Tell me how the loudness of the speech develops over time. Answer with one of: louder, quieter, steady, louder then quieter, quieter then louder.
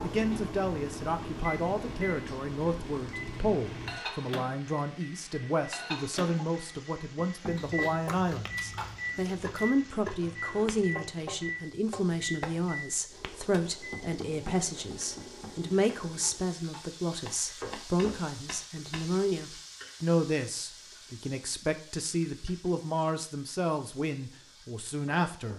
steady.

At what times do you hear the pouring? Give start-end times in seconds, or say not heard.
not heard.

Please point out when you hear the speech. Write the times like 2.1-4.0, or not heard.
0.0-25.5.